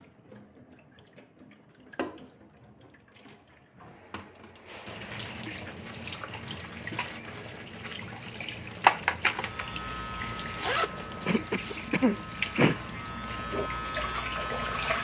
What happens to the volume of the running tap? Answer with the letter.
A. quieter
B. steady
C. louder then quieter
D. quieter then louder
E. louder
C.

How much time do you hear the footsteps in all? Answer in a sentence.
The footsteps can't be heard in this clip.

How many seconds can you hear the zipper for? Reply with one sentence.
You can hear the zipper for 2 seconds altogether.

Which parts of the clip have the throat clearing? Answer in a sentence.
You can hear the throat clearing from 11.2 to 12.8 s.